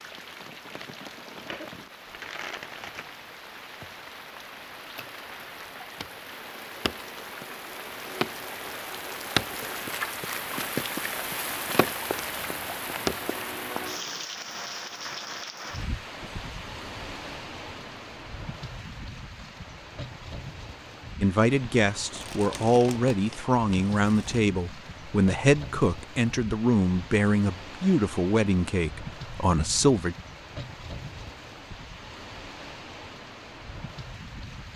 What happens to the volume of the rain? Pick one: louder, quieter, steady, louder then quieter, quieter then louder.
louder then quieter.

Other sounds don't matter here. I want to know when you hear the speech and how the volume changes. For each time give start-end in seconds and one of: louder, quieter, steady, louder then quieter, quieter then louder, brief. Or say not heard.
21.2-30.1 steady.